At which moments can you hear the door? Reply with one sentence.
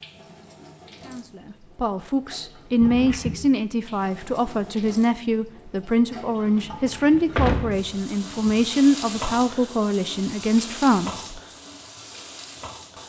The door can be heard from 2.8 to 3.4 s and from 6.8 to 8.6 s.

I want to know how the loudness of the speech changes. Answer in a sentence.
The volume of the speech stays about the same.